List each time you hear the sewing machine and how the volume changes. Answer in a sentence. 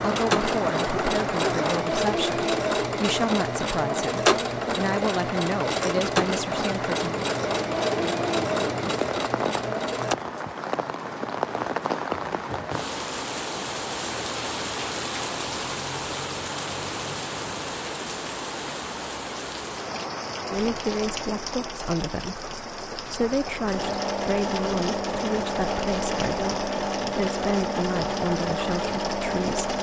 The sewing machine can be heard from 0.0 to 10.2 s, at a steady volume; and from 23.7 to 29.7 s, at a steady volume.